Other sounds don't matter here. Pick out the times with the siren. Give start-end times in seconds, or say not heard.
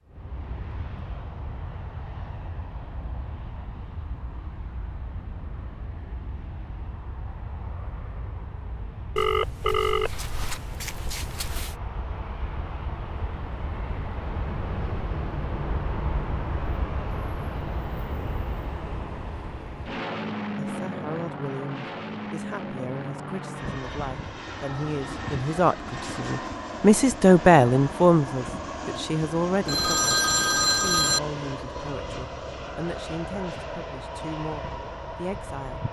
not heard.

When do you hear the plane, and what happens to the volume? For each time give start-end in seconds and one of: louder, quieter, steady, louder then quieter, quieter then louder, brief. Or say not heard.
0.1-35.8 louder.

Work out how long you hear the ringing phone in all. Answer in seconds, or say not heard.
4 s.